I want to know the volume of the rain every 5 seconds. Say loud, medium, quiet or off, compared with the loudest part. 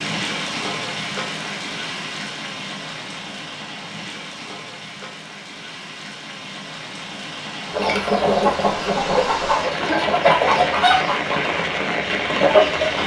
medium, medium, loud.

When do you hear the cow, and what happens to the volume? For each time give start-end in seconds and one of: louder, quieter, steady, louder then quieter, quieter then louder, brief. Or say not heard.
not heard.